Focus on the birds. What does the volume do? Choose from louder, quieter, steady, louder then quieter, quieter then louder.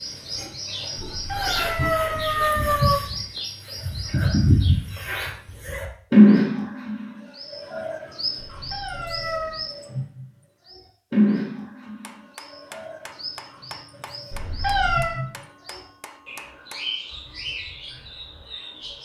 louder then quieter.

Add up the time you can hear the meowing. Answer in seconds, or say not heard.
4 s.